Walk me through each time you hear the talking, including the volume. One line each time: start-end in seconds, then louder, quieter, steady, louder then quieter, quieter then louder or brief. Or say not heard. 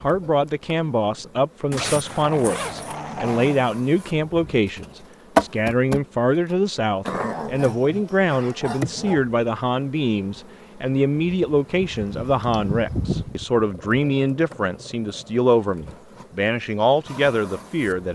0.0-18.0 steady.